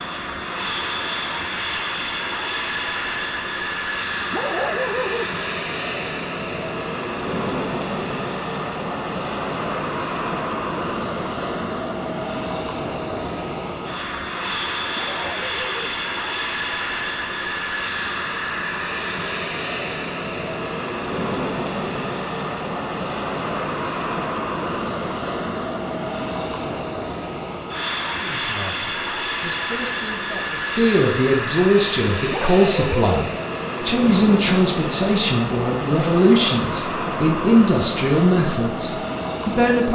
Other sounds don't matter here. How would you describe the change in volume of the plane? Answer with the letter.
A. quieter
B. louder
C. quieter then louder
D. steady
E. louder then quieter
D.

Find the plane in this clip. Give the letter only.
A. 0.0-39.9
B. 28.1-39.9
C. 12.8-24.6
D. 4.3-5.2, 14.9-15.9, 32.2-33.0
A.